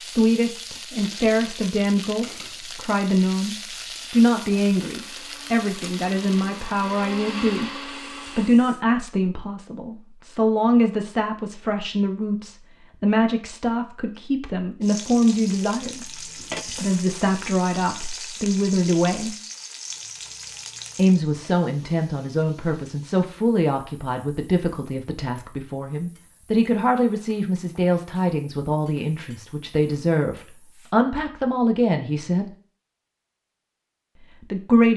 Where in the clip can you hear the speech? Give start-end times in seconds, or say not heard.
0.0-19.4, 20.9-32.5, 34.4-34.9.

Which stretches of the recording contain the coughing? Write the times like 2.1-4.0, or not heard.
not heard.